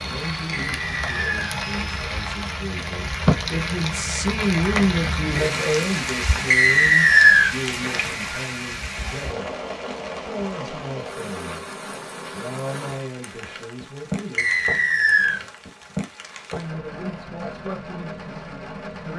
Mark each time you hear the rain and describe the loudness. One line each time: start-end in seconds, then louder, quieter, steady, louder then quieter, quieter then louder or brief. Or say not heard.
0.0-19.1 quieter.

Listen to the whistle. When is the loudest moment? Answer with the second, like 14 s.
7 s.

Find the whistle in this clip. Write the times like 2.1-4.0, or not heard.
0.5-1.6, 6.5-7.5, 14.3-15.4.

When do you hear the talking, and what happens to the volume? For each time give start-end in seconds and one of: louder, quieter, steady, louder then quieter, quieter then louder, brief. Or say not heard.
0.0-9.5 louder then quieter
10.2-11.7 brief
12.3-14.7 brief
16.5-19.1 brief.